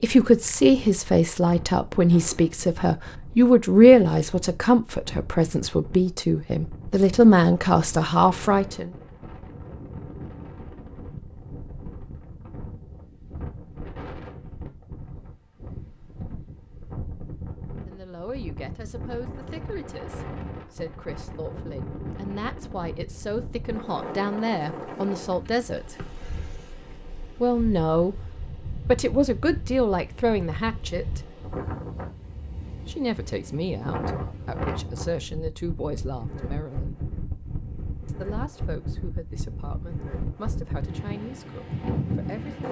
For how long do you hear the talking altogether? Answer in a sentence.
The talking can be heard for 30 seconds in total.